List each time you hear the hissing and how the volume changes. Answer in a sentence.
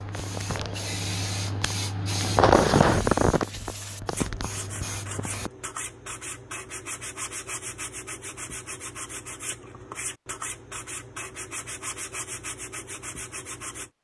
The hissing can be heard from 0.0 to 5.5 s, getting louder then quieter.